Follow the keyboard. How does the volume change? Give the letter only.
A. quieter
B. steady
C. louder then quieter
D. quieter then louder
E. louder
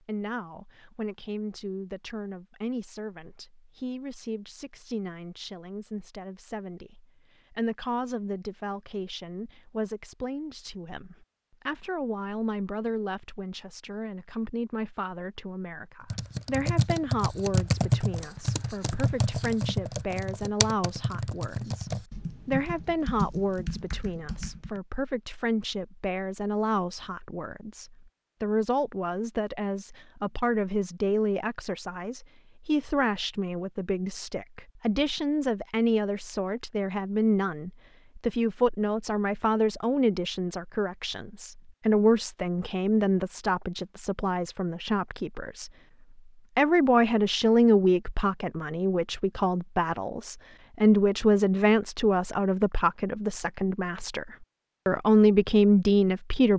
A.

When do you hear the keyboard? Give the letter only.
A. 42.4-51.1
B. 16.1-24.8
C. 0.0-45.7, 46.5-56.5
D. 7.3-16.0
B.